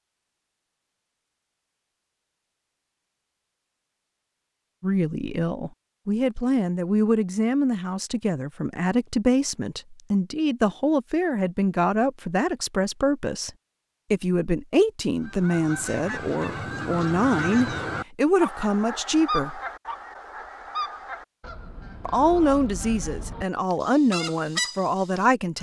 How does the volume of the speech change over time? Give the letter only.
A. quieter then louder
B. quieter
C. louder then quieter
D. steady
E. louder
D.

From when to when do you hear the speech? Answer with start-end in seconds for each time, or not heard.
4.8-13.5, 14.1-19.6, 22.1-25.5.